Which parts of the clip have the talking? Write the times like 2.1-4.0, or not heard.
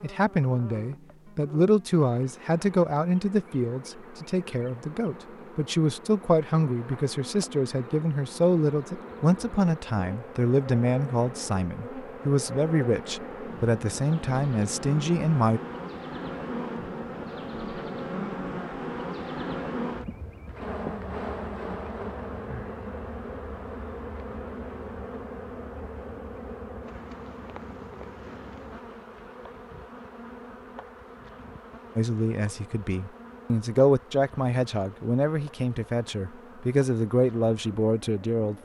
0.0-15.6, 31.9-38.6.